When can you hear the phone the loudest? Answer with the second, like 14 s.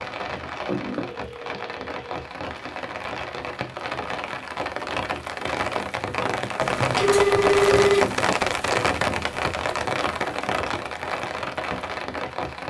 8 s.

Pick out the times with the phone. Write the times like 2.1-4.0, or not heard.
0.7-2.2, 6.6-8.1.